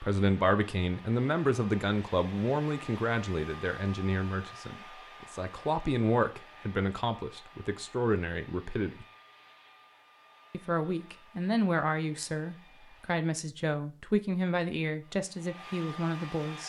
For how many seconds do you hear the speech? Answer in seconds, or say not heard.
15 s.